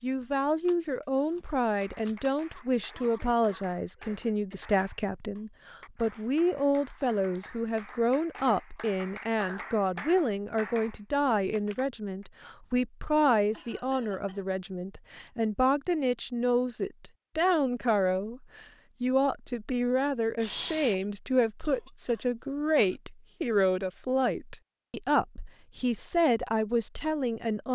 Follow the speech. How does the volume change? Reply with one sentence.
The volume of the speech stays about the same.